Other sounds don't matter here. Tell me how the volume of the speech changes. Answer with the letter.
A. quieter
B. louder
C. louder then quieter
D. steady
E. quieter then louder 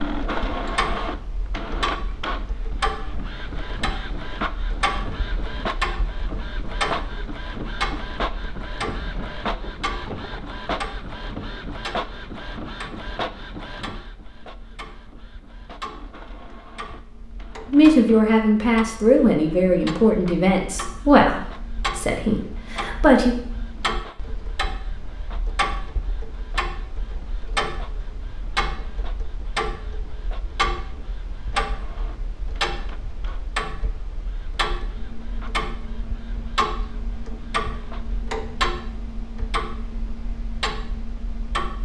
A.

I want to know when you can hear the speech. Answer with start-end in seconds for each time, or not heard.
17.7-23.4.